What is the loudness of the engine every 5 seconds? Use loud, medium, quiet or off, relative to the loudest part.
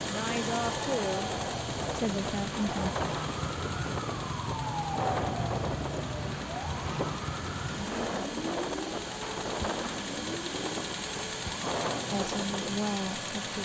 loud, medium, loud.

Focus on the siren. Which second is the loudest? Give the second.
5 s.